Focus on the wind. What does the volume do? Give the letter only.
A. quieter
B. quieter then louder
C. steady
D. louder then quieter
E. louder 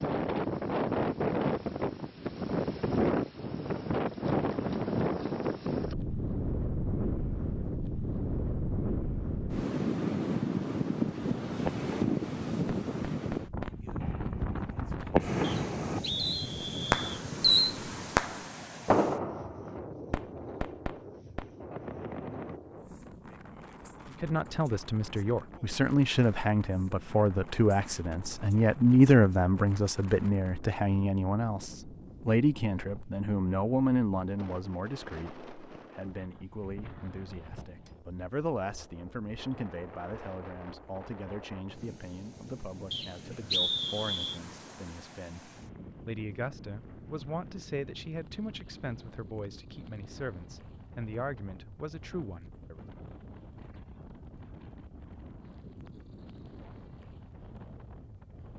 A.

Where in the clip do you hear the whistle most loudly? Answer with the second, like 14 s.
44 s.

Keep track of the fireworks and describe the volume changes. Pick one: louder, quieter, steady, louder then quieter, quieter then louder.
louder then quieter.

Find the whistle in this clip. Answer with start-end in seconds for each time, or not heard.
15.4-17.2, 42.9-44.4.